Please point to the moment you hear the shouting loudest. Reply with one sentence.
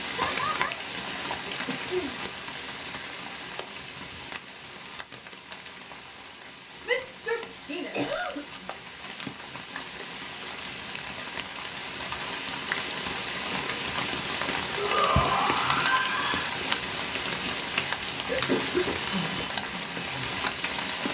The volume of the shouting peaks at 15 seconds.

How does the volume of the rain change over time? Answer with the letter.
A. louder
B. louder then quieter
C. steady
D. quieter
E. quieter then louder
E.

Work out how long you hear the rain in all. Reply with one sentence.
You can hear the rain for 21 seconds altogether.